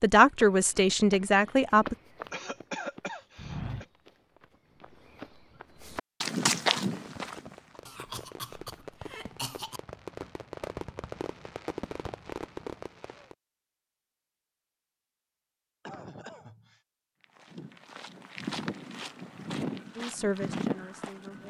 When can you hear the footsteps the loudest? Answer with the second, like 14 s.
7 s.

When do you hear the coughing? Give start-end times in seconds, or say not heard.
2.3-3.9, 7.8-9.8, 15.8-16.8.